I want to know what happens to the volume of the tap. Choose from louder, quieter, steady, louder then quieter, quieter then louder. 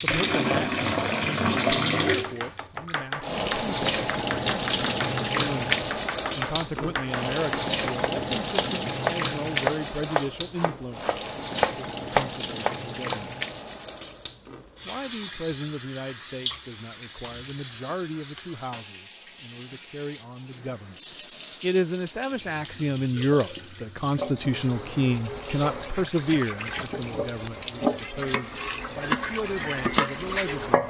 quieter then louder.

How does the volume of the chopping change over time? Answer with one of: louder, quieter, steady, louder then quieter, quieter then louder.
louder.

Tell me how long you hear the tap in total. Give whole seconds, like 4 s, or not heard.
31 s.